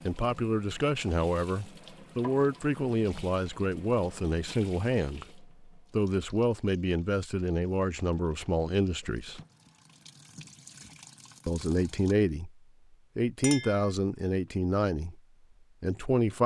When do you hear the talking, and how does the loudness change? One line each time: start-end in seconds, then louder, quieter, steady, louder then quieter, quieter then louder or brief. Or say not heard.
0.1-9.4 steady
11.4-12.5 brief
13.2-15.2 brief
15.8-16.4 brief.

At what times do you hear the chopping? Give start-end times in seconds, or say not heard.
not heard.